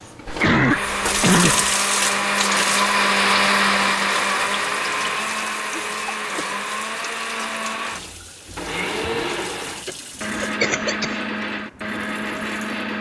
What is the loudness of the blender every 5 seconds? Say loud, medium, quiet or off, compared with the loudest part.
loud, medium, medium.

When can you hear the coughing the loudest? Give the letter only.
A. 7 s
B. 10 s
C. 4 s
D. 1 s
D.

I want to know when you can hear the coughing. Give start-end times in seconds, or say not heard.
0.2-1.7, 5.7-6.6, 9.0-11.1.